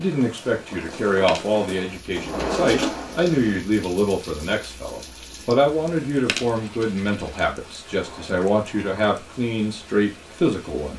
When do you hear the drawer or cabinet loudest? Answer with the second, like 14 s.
3 s.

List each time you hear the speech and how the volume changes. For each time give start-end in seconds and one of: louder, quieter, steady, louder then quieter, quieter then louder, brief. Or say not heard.
0.0-10.9 steady.